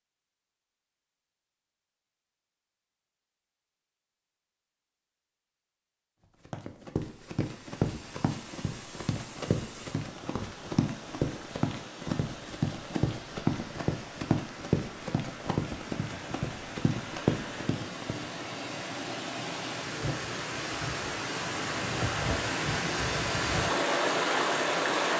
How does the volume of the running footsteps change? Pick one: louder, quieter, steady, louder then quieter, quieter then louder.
steady.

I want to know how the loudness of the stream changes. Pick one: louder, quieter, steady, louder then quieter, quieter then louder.
louder.